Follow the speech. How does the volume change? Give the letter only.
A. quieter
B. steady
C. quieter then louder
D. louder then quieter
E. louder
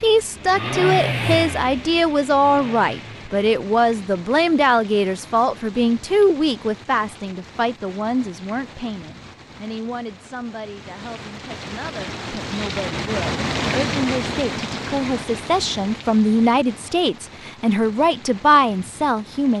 C.